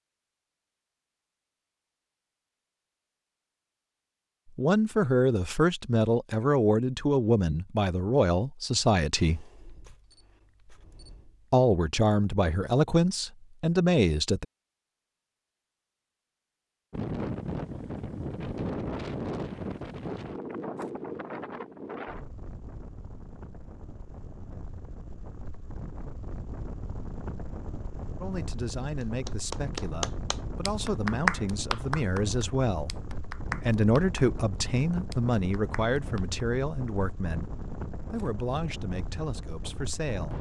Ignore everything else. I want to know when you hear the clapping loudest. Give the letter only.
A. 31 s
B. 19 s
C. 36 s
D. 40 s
A.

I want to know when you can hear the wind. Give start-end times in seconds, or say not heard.
16.9-40.3.